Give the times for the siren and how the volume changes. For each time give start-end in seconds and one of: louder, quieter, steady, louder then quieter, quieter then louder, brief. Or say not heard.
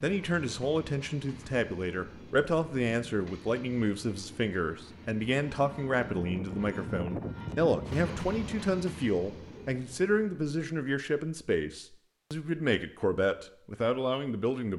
not heard.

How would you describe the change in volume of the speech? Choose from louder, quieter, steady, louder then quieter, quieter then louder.
steady.